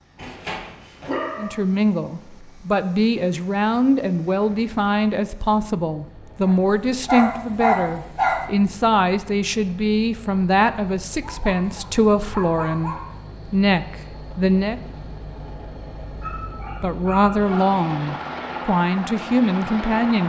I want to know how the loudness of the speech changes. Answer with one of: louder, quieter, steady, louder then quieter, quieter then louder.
steady.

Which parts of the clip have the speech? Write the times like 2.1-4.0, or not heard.
1.4-14.8, 16.8-20.2.